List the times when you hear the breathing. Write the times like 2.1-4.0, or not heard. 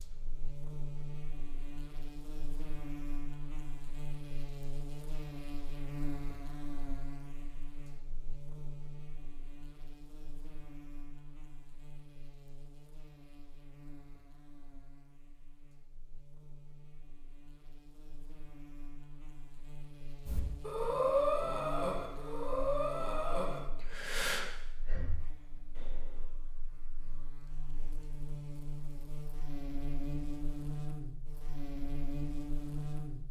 20.2-26.2.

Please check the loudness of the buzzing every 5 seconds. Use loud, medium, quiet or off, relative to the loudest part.
medium, medium, quiet, quiet, medium, medium, loud.